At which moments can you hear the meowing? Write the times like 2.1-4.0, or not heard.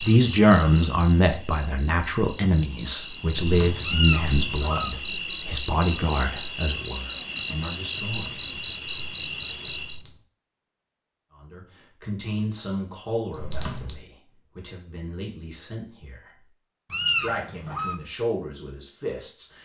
3.8-4.9, 16.9-17.9.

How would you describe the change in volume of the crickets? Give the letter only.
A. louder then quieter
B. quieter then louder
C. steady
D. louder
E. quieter
D.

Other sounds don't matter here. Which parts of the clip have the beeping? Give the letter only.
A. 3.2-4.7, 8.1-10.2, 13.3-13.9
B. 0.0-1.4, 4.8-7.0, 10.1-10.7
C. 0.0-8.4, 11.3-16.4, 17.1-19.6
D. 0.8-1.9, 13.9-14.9
A.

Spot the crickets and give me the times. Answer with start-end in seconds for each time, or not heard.
0.0-10.1.